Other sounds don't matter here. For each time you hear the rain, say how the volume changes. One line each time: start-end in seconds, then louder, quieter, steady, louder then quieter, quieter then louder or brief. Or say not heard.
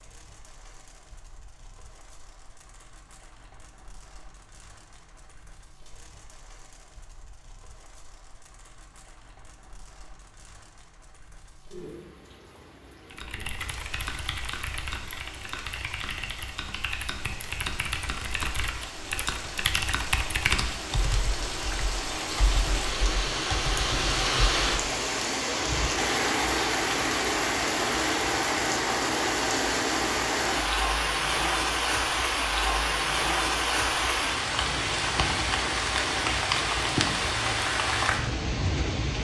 0.0-39.1 louder.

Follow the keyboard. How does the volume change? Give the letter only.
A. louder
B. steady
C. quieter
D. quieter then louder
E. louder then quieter
E.